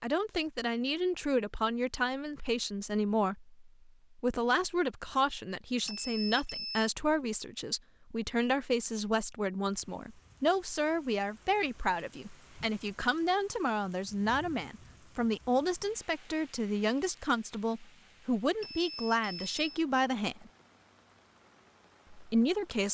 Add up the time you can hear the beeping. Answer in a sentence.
The beeping can be heard for 2 seconds in total.